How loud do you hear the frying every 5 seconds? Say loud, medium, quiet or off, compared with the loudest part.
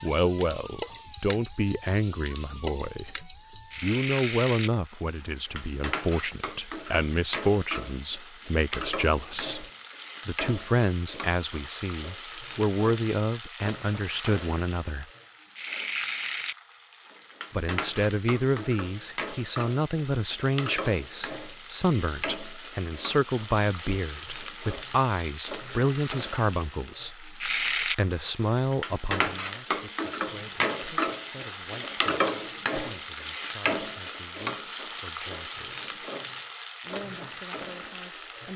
medium, medium, medium, medium, medium, loud, loud, medium.